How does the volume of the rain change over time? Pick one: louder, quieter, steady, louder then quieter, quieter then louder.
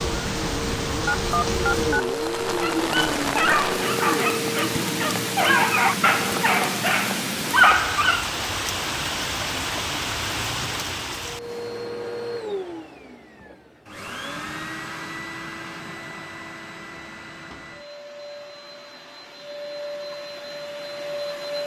steady.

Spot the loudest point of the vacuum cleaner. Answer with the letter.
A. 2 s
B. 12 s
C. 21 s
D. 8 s
A.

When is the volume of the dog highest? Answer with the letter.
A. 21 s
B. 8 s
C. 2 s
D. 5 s
B.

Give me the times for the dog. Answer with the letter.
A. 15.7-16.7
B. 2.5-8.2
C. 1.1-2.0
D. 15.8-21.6
B.